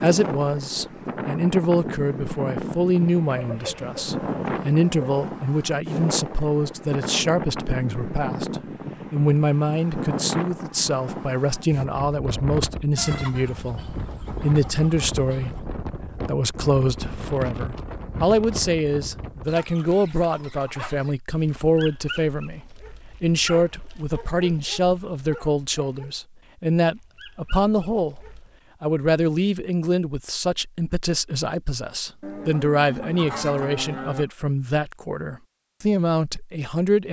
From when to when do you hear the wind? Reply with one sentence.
You can hear the wind from 0.0 to 19.6 s.